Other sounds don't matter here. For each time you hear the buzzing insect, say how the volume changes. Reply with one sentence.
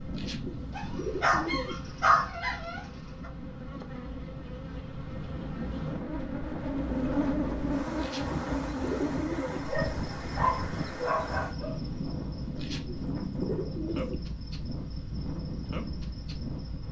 You can hear the buzzing insect from 0.0 to 16.8 s, getting louder then quieter.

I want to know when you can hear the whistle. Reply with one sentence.
You can't hear the whistle here.